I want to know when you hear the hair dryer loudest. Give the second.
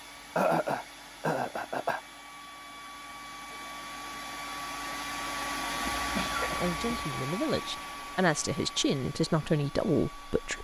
6 s.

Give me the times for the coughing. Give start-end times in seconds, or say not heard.
0.3-2.0, 6.0-7.0.